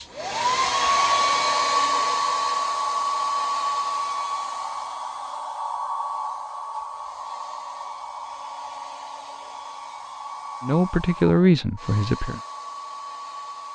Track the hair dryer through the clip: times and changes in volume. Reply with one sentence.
You can hear the hair dryer from 0.0 to 13.7 s, getting quieter.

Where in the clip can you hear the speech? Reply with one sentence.
The speech can be heard from 10.6 to 12.4 s.